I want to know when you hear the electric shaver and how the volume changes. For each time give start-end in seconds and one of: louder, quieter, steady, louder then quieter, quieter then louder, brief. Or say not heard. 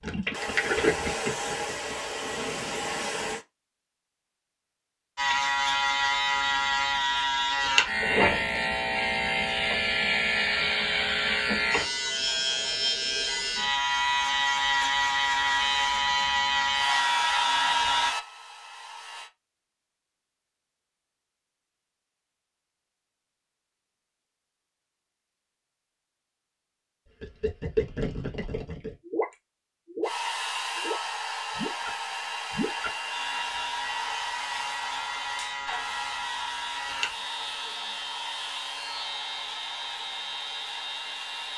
5.2-18.1 steady
33.1-41.5 steady.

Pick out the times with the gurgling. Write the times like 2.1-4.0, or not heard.
0.0-3.4, 27.2-33.0.